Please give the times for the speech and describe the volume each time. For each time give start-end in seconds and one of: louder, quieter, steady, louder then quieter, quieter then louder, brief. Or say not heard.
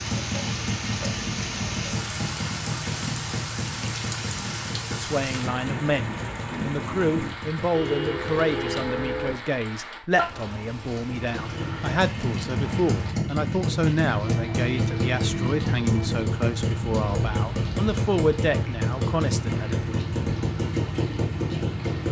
4.9-19.9 steady.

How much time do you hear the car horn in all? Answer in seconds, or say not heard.
4 s.